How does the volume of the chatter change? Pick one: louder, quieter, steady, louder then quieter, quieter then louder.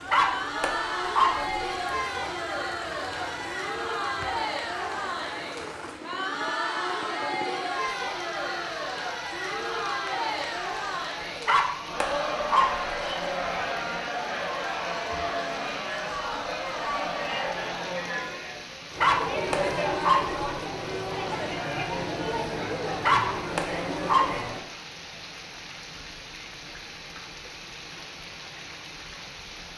steady.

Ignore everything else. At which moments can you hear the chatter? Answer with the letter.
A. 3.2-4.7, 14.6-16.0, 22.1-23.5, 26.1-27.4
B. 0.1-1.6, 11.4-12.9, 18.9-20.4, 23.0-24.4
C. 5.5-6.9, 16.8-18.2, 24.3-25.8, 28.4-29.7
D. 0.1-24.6
D.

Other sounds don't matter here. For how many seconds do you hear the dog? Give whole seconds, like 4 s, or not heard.
6 s.